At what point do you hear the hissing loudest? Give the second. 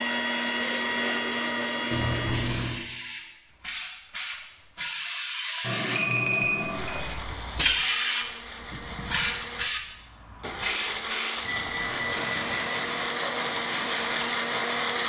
8 s.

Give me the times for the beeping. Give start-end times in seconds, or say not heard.
1.9-2.8, 5.6-7.0, 11.4-12.7.